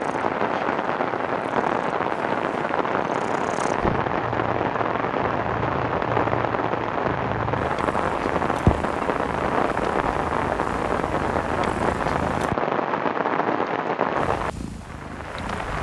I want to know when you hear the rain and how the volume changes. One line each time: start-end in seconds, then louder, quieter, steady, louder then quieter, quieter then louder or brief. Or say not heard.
0.0-15.7 steady.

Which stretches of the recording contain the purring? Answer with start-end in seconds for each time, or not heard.
0.0-12.6, 14.2-15.7.